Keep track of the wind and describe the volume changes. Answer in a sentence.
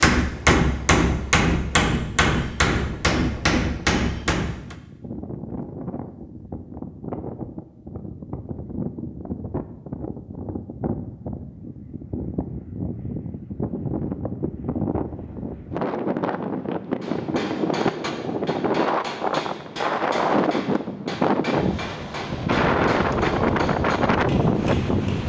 The loudness of the wind goes up.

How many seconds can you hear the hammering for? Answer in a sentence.
The hammering can be heard for 13 seconds in total.